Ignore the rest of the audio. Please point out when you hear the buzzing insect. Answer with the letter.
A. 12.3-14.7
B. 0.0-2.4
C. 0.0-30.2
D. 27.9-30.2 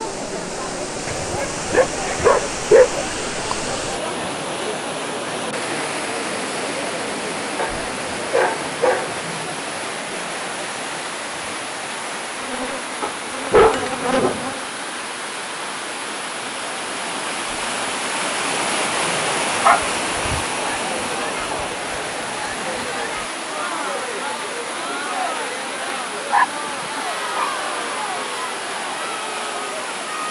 A.